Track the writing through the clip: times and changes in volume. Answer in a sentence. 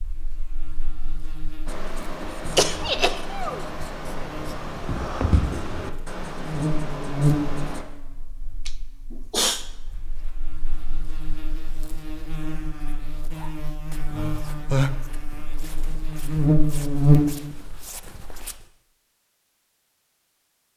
You can hear the writing from 1.6 to 7.8 s, getting louder then quieter.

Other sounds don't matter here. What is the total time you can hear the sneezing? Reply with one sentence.
You can hear the sneezing for 3 seconds altogether.